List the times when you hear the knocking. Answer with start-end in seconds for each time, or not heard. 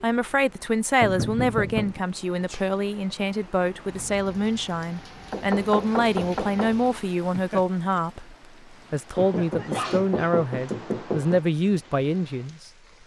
1.0-2.0, 5.3-6.8, 9.2-11.4.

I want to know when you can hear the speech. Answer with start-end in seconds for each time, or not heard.
0.0-13.0.